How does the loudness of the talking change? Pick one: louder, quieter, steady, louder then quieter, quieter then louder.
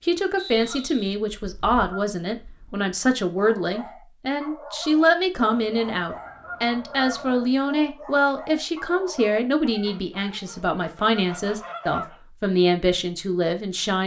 steady.